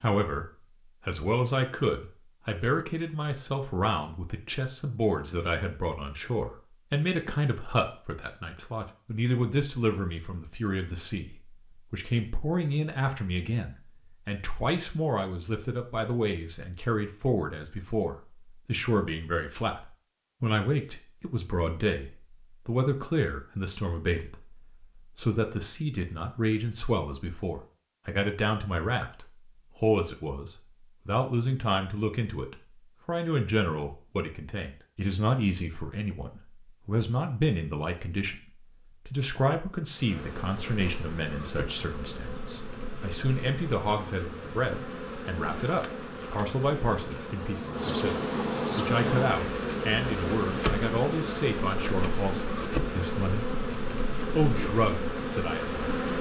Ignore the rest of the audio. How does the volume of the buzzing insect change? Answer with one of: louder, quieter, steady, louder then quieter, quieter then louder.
louder.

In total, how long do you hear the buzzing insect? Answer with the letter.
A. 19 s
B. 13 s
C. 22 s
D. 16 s
D.